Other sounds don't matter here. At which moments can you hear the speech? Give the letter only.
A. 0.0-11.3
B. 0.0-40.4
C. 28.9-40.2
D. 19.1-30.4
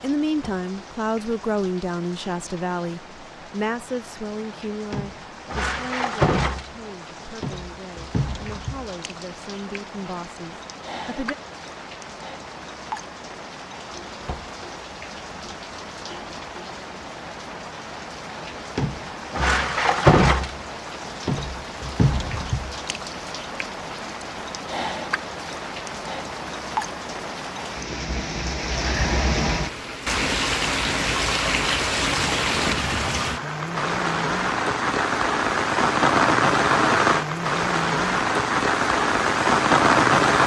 A.